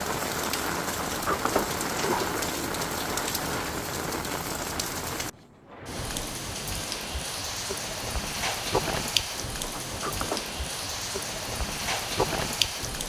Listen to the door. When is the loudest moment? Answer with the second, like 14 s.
1 s.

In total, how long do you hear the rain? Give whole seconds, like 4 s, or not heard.
13 s.